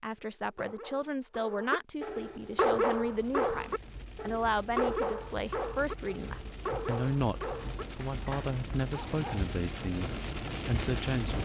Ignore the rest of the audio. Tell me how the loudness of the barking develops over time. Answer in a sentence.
The loudness of the barking goes up, then down.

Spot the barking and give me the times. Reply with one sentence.
The barking can be heard from 0.1 to 9.4 s.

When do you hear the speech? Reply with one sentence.
The speech can be heard from 0.0 to 11.4 s.